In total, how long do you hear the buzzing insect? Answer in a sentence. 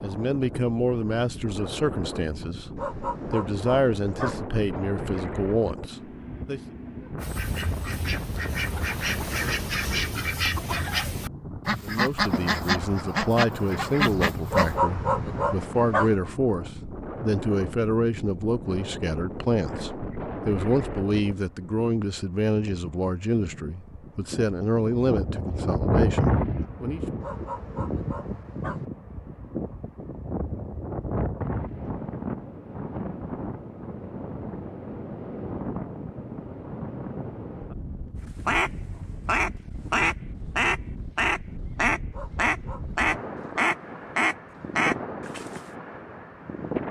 You can't hear the buzzing insect here.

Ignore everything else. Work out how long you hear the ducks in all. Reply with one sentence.
You can hear the ducks for 15 seconds altogether.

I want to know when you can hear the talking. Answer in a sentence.
The talking can be heard from 0.0 to 6.6 s and from 11.8 to 27.0 s.